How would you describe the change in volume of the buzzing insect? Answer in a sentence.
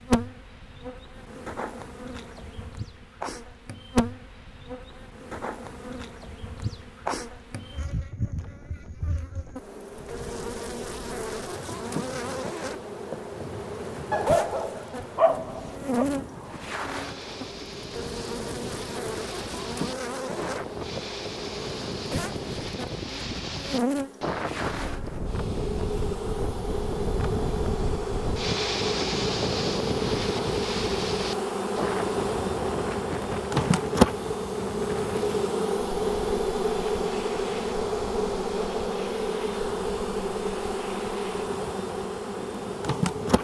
The volume of the buzzing insect goes up.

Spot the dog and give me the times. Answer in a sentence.
The dog can be heard from 14.1 to 16.1 s.